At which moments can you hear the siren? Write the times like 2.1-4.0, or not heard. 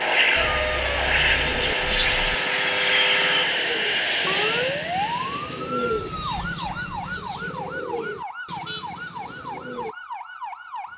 0.1-10.9.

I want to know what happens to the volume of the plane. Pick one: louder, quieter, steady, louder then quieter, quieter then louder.
quieter.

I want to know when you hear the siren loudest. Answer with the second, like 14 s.
5 s.